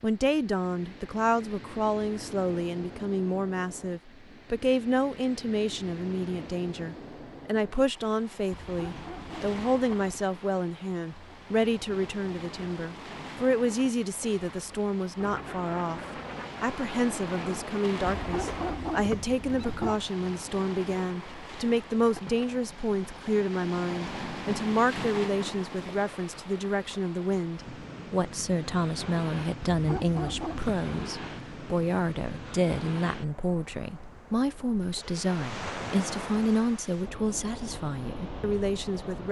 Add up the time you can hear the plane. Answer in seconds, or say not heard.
4 s.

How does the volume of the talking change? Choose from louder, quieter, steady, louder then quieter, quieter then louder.
steady.